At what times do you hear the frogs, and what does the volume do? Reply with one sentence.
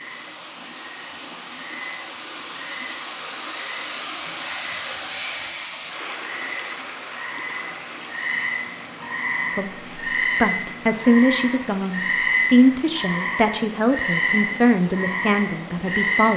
The frogs can be heard from 0.0 to 16.3 s, getting louder.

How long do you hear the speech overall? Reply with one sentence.
You can hear the speech for 7 seconds altogether.